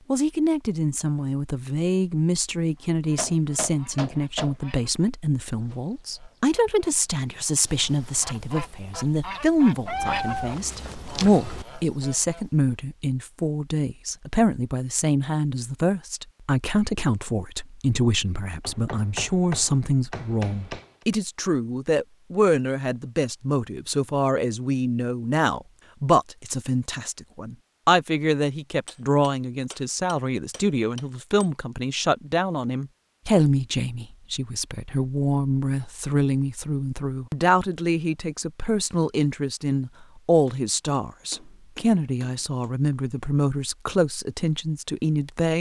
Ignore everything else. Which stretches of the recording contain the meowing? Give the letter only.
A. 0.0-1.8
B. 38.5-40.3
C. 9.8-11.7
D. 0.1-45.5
C.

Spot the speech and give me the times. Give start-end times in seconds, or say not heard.
0.1-45.5.